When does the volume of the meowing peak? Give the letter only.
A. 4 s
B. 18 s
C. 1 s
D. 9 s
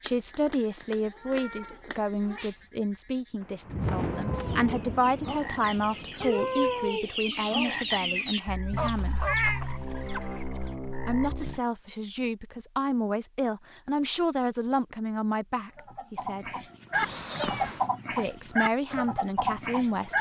D.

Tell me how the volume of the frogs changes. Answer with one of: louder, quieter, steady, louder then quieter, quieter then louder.
louder then quieter.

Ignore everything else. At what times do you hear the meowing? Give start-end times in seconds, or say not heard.
0.1-2.5, 8.4-9.6, 16.9-17.9.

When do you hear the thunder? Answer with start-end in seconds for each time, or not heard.
3.4-6.9.